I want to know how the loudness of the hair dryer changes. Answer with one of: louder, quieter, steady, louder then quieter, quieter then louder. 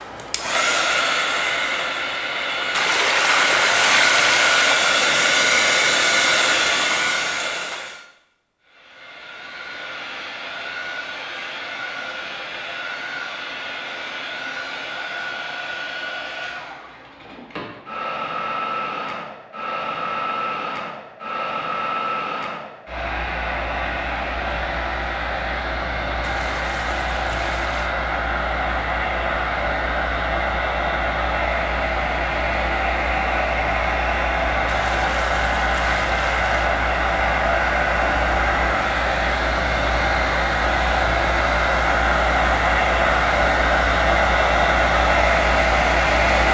quieter then louder.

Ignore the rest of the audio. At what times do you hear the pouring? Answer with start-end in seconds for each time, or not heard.
2.7-4.8, 26.2-27.9, 34.6-36.7.